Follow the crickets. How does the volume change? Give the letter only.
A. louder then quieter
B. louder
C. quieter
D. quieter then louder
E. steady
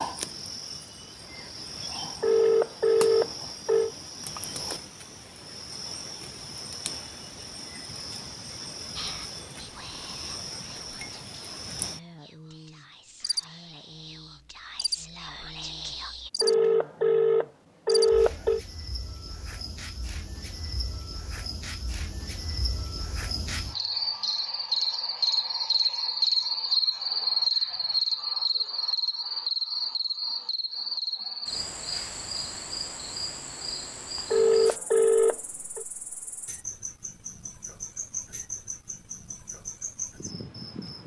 A.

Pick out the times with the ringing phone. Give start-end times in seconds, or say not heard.
2.2-3.9, 16.4-18.6, 34.3-35.9.